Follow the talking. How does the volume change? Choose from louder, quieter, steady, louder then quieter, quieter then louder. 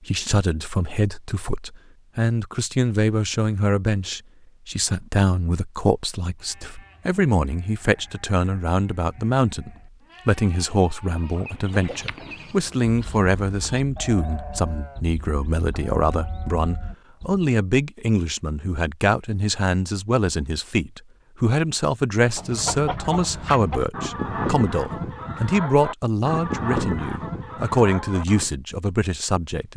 steady.